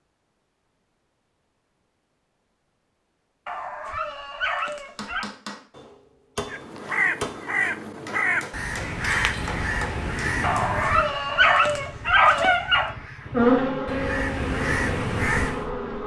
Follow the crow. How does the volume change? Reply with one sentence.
The loudness of the crow goes down, then up.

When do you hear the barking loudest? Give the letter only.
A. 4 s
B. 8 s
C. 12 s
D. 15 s
C.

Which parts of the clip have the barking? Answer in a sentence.
The barking can be heard from 3.5 to 5.2 s and from 10.4 to 12.9 s.